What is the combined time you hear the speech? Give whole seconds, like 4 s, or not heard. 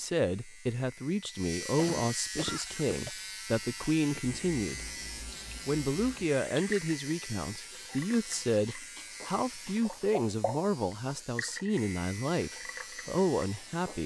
13 s.